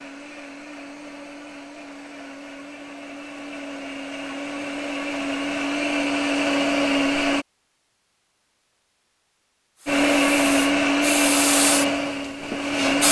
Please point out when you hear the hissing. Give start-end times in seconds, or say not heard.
9.8-13.0.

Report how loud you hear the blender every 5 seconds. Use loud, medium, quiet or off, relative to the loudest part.
quiet, loud, loud.